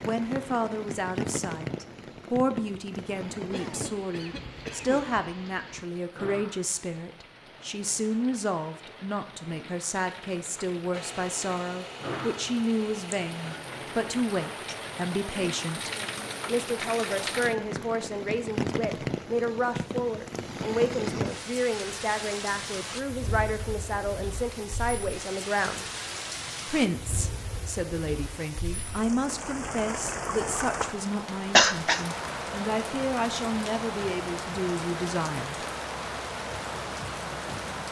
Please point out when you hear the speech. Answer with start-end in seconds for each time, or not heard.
0.0-25.9, 26.6-35.6.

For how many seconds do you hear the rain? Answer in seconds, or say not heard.
38 s.